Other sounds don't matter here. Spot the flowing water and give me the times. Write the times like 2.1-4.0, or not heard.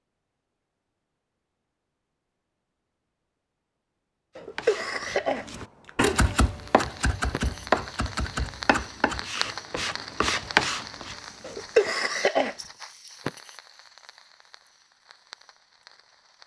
not heard.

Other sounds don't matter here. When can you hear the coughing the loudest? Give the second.
12 s.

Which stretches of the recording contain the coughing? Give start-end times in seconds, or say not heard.
4.3-5.9, 11.4-12.6.